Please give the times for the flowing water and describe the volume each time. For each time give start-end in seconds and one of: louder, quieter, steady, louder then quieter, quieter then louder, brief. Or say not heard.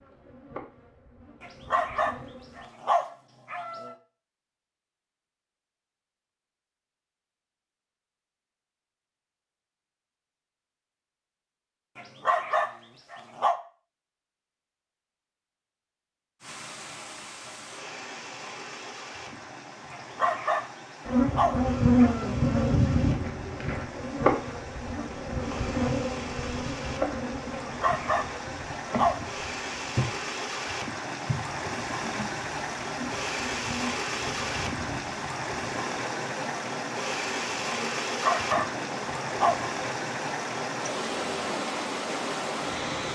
16.4-43.1 louder.